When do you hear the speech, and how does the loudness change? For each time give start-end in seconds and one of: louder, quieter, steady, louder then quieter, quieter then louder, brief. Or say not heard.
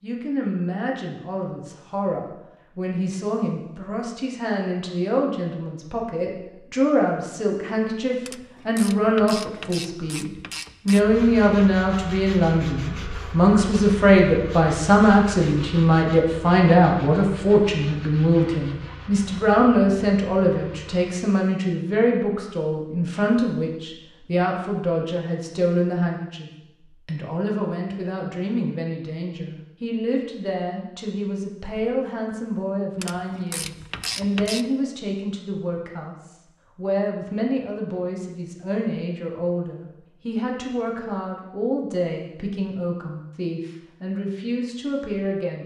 0.0-45.6 louder then quieter.